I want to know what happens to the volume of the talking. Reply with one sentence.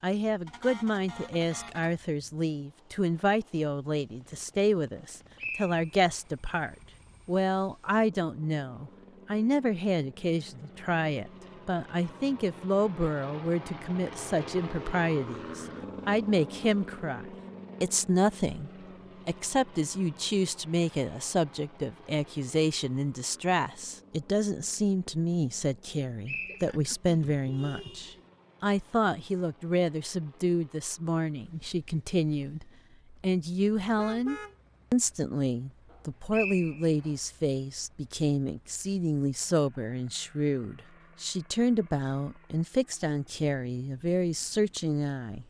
The volume of the talking stays about the same.